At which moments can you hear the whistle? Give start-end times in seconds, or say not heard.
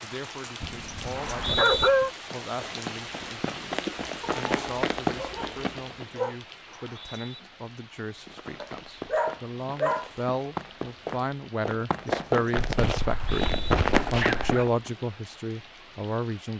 1.1-1.9, 6.7-7.4, 13.0-13.8.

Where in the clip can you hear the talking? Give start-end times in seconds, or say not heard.
0.0-3.8, 4.3-13.4, 14.1-16.5.